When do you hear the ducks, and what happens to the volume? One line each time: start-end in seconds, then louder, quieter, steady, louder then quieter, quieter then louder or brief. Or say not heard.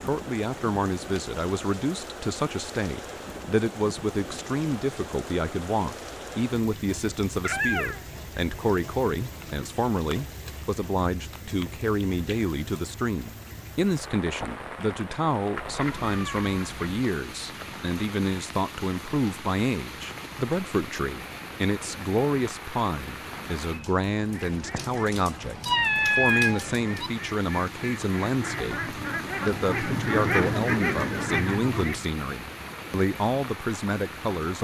24.2-32.1 louder.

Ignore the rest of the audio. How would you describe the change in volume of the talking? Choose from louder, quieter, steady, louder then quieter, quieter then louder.
steady.